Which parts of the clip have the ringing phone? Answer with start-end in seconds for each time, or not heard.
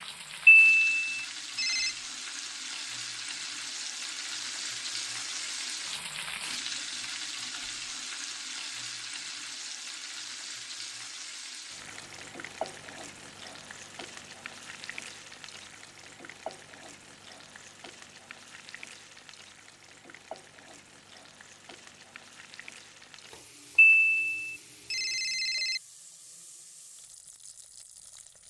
0.5-1.9, 23.8-25.8.